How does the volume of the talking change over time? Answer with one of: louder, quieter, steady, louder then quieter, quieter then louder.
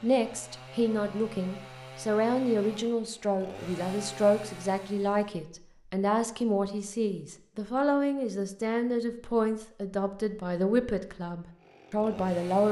steady.